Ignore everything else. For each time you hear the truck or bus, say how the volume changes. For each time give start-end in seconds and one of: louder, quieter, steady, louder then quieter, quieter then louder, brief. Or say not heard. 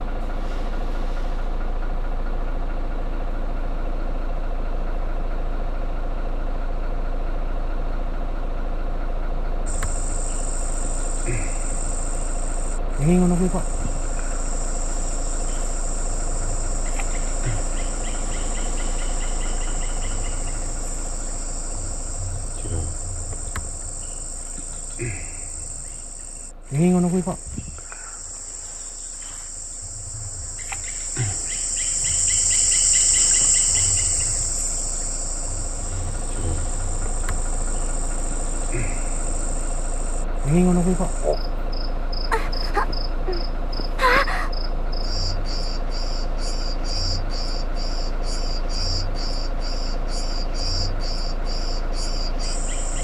0.0-52.9 quieter then louder.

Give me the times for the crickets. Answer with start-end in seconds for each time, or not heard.
9.7-52.9.